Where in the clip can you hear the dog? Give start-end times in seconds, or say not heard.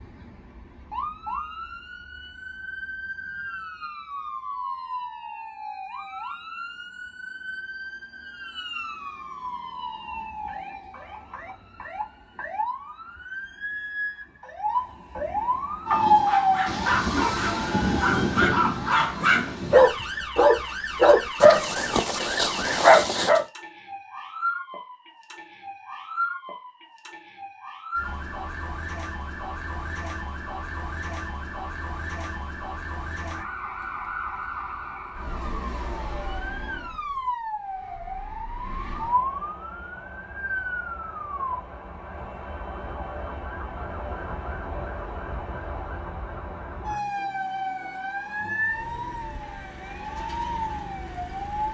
15.9-23.4.